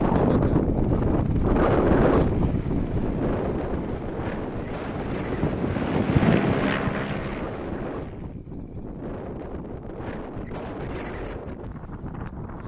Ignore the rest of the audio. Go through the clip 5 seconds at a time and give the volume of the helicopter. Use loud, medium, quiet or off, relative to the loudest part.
quiet, loud, off.